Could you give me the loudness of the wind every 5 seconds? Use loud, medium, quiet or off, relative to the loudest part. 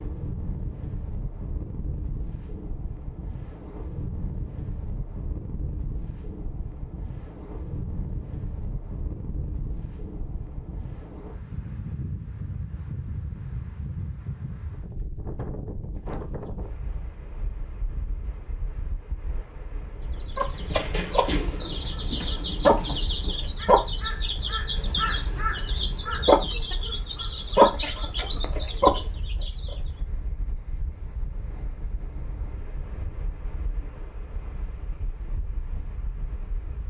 loud, loud, loud, loud, medium, medium, medium, medium.